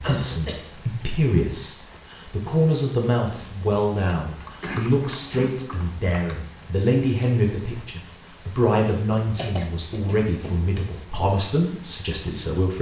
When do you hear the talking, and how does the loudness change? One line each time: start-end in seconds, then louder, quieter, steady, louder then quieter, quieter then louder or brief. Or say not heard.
0.0-12.7 steady.